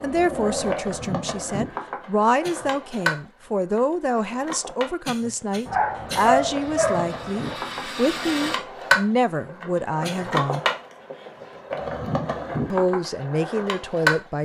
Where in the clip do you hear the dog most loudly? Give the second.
6 s.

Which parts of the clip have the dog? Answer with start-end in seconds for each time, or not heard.
5.7-7.6.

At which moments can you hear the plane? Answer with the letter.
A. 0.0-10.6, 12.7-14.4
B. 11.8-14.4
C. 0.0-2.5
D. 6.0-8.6
D.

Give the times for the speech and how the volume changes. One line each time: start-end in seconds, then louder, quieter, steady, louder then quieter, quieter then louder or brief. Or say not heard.
0.0-10.6 steady
12.7-14.4 brief.